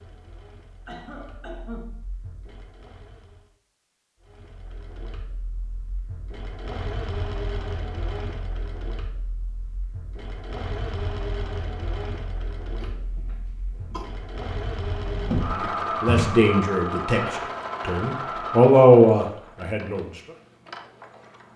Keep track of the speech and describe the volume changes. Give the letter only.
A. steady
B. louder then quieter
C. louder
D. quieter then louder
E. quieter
D.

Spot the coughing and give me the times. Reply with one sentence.
You can hear the coughing from 0.8 to 2.0 s and from 12.8 to 14.1 s.